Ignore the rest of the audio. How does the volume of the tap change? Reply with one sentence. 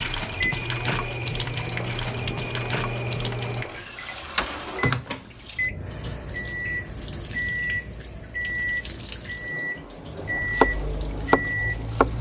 The volume of the tap goes down.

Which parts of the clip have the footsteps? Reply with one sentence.
The footsteps can't be heard in this clip.